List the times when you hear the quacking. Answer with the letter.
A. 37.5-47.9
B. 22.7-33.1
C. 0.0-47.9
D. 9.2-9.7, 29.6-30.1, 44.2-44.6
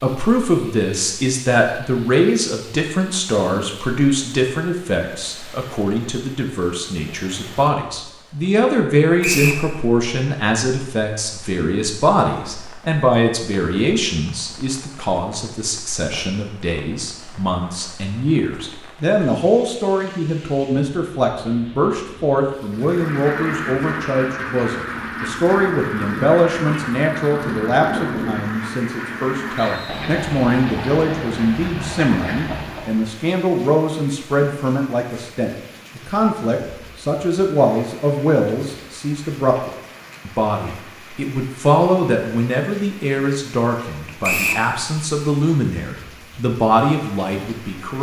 B.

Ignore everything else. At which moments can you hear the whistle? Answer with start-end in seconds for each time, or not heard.
9.2-9.7, 29.6-30.1, 44.2-44.6.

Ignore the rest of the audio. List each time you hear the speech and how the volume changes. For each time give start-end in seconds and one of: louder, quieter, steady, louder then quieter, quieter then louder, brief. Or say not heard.
0.0-47.9 steady.